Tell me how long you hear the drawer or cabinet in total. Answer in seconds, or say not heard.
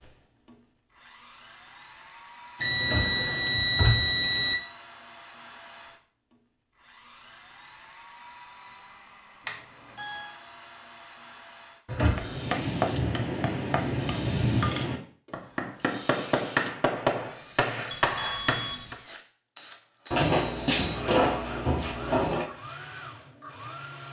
4 s.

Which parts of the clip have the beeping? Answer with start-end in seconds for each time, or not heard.
2.6-4.5, 9.4-10.3, 17.9-18.9.